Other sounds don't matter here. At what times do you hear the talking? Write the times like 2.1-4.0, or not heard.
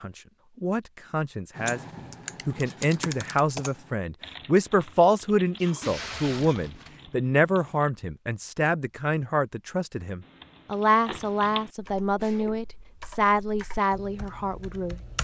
0.0-15.0.